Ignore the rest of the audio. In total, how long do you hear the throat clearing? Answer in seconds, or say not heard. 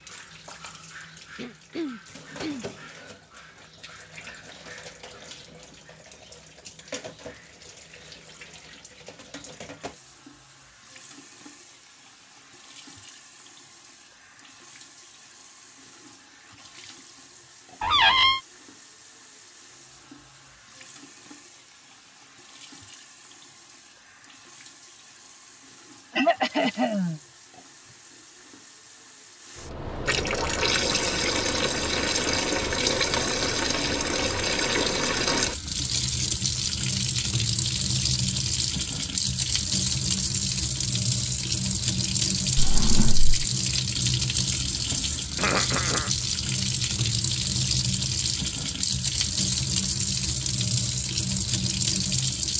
3 s.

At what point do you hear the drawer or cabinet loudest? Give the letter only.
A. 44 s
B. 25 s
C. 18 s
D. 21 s
C.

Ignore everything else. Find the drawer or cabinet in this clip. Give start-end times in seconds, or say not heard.
17.8-18.4, 42.5-43.4.